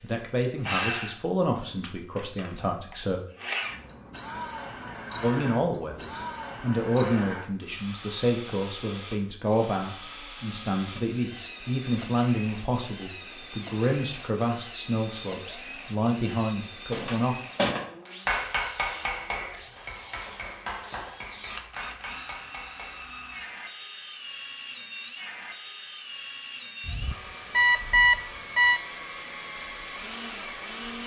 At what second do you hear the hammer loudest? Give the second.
18 s.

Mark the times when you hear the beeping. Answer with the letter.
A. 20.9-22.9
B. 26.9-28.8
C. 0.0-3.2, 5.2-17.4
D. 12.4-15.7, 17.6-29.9
B.